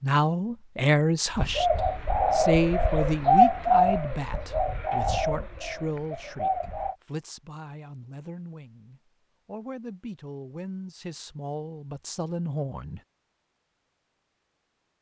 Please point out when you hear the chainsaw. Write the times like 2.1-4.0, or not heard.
not heard.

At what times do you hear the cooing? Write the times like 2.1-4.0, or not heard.
1.4-7.0.